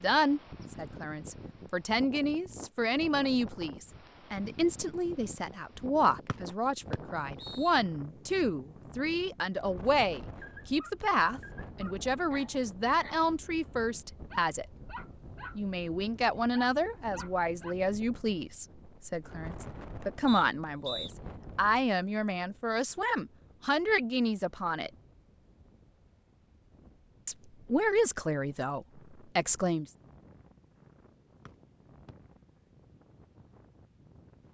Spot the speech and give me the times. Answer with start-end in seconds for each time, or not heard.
0.0-14.7, 15.6-24.9, 27.2-29.9.